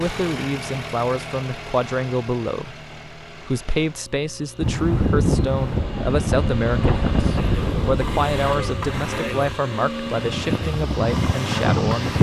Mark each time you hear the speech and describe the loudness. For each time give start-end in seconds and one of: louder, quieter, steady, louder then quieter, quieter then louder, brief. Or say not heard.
0.0-12.1 steady.